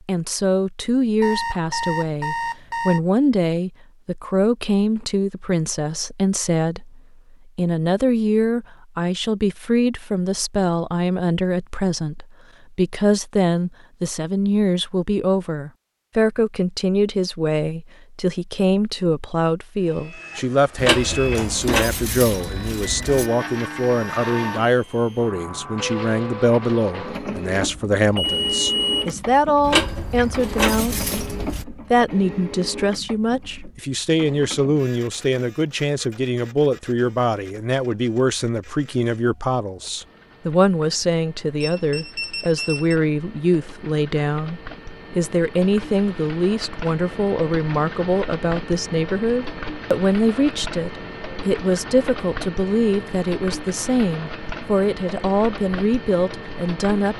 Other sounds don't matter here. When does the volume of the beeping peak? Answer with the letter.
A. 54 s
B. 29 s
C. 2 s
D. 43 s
B.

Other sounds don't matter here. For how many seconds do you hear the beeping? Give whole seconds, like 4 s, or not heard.
4 s.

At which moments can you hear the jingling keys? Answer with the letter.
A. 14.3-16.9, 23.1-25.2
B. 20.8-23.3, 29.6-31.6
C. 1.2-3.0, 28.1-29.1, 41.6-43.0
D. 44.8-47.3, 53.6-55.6
B.